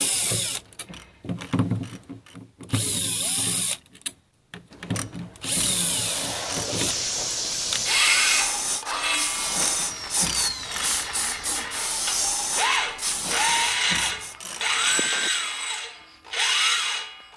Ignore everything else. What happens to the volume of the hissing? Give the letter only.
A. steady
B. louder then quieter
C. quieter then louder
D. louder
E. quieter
A.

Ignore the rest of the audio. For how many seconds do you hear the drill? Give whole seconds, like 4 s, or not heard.
17 s.